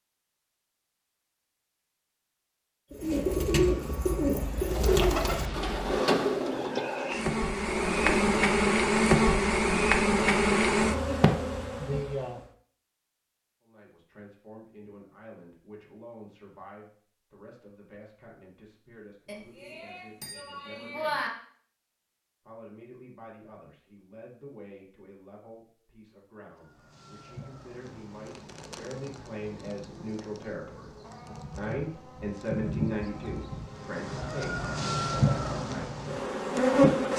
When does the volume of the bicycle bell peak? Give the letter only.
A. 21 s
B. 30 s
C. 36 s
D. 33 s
A.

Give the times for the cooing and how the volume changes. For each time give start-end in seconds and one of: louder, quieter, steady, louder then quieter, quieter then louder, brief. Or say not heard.
2.9-8.2 quieter.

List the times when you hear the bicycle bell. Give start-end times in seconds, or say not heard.
19.2-21.3.